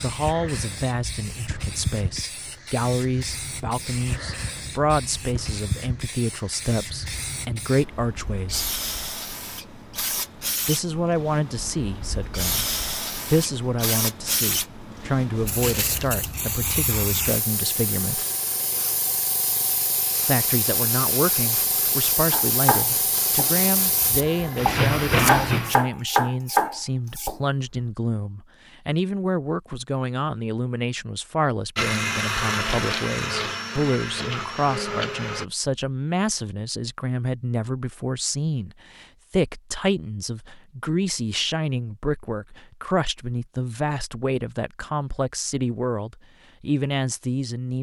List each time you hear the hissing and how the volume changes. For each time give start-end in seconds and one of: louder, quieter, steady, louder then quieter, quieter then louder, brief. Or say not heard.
0.0-25.8 louder.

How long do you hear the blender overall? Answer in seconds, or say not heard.
4 s.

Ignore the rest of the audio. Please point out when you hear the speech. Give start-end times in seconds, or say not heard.
0.0-8.7, 10.7-12.7, 13.3-18.2, 20.2-47.7.